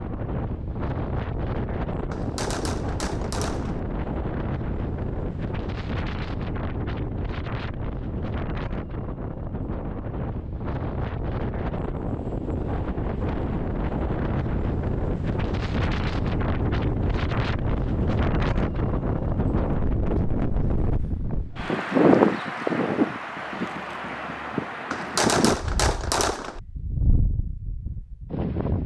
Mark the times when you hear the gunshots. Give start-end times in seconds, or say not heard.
2.1-3.8, 24.9-26.6.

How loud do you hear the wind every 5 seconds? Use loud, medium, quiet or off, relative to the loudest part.
medium, medium, medium, loud, loud, medium.